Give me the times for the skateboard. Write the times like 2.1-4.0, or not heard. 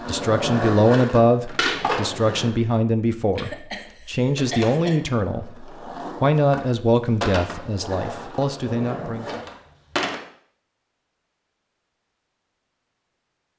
0.0-2.5, 4.3-10.2.